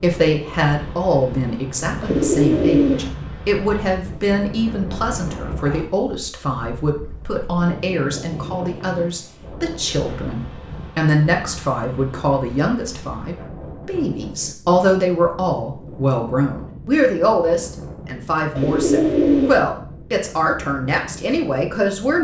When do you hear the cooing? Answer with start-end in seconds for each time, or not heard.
2.0-3.1, 18.6-19.6.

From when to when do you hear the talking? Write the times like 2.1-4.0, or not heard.
0.0-22.2.